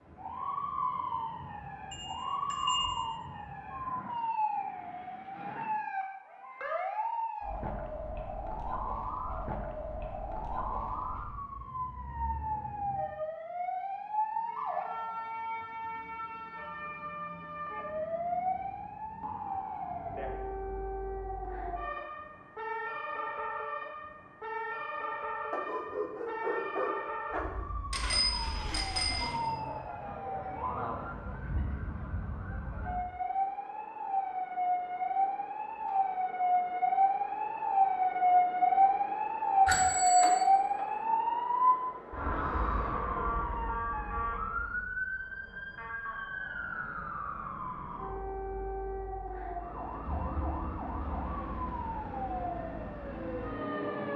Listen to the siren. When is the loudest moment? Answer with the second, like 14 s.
40 s.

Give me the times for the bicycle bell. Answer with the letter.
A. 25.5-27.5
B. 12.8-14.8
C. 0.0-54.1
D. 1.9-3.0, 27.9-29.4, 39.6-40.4
D.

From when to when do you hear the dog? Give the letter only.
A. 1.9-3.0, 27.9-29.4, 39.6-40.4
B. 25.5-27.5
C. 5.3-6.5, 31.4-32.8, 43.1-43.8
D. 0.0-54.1
B.